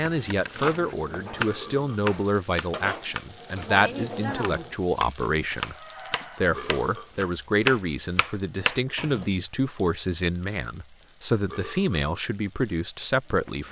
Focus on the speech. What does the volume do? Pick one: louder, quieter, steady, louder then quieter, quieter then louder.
steady.